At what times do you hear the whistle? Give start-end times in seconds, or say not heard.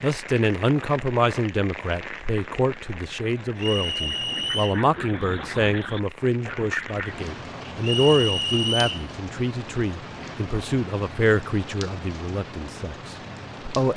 3.5-4.8, 7.8-9.1.